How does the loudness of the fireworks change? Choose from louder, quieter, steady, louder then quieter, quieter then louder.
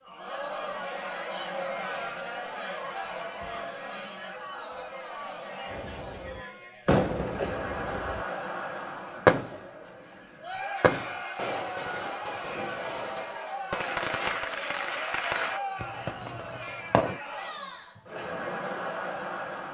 louder then quieter.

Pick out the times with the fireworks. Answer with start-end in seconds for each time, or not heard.
5.7-17.2.